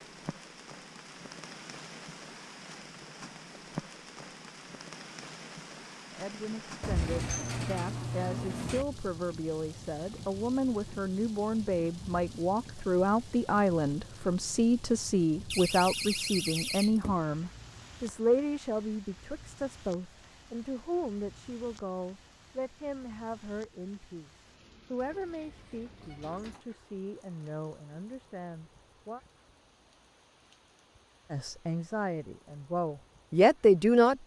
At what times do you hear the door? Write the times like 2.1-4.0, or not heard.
6.8-8.8, 15.5-17.2, 24.9-26.6.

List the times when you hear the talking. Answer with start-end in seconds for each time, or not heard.
6.1-29.2, 31.3-34.2.